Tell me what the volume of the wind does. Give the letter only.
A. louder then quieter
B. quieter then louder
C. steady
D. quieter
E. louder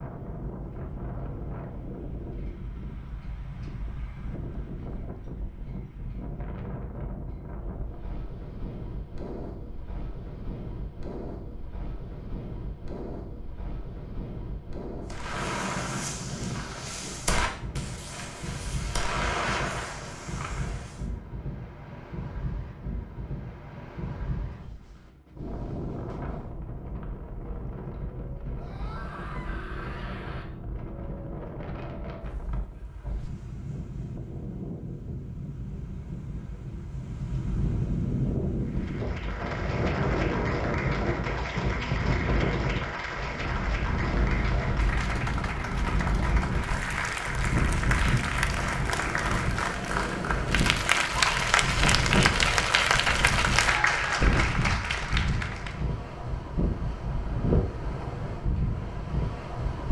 E.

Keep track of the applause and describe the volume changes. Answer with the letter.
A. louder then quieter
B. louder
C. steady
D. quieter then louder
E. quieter
B.